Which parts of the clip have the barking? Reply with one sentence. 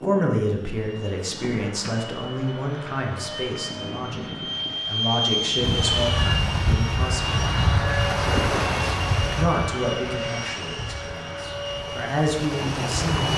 You can't hear the barking here.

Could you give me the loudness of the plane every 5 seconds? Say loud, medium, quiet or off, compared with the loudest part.
medium, loud, medium.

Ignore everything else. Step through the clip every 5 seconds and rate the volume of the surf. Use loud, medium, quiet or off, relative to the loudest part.
off, loud, medium.